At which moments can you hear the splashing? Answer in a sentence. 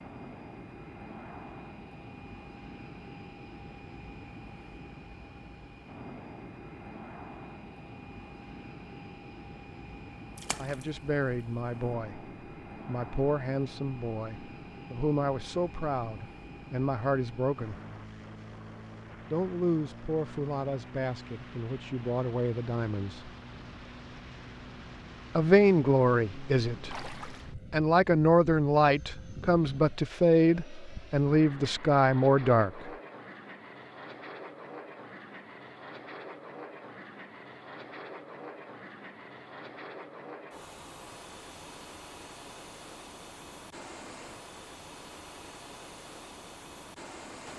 The splashing can be heard from 10.3 to 10.8 s and from 26.9 to 27.5 s.